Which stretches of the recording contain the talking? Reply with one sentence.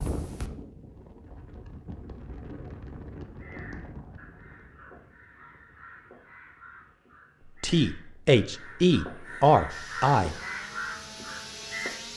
You can hear the talking from 7.6 to 10.3 s.